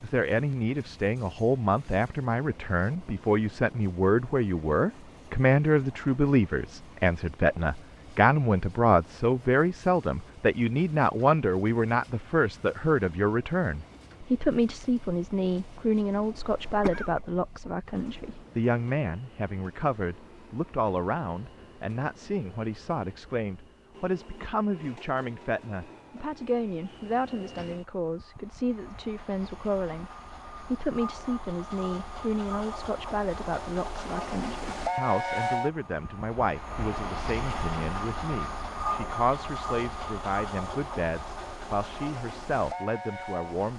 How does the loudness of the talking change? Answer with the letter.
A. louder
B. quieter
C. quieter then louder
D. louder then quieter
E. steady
B.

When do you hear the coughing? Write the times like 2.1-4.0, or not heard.
16.4-17.2.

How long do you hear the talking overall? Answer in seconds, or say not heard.
44 s.